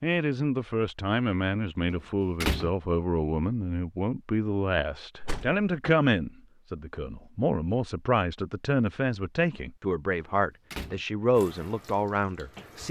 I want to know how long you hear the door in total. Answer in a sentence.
You can hear the door for 2 seconds altogether.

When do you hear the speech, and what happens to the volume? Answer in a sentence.
The speech can be heard from 0.0 to 12.8 s, at a steady volume.